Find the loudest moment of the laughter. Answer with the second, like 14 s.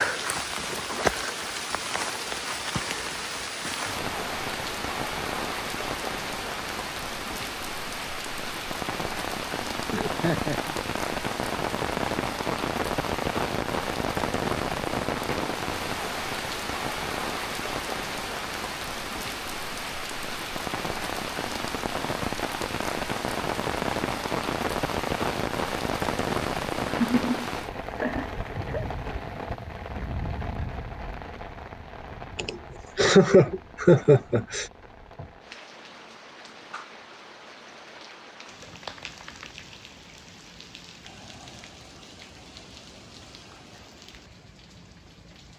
33 s.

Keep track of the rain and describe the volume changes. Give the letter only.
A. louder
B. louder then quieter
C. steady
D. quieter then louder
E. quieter
E.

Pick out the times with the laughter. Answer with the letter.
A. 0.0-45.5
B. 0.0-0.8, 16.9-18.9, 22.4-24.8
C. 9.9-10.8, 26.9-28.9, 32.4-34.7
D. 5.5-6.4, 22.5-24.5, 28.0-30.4
C.